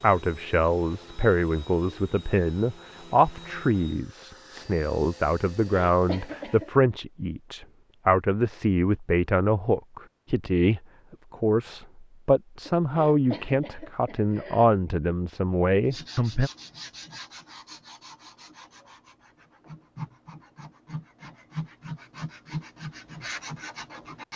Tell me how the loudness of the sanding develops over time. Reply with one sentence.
The volume of the sanding goes down, then up.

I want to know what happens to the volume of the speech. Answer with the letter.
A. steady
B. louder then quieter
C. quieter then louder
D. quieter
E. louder
A.